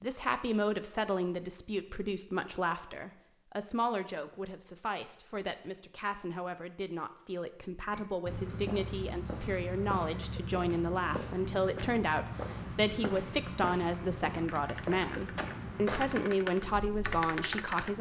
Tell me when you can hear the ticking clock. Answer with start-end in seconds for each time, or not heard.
not heard.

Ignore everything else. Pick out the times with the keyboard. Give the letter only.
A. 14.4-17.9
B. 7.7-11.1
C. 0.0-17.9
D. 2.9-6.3
A.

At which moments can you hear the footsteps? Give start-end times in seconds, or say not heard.
7.9-17.2.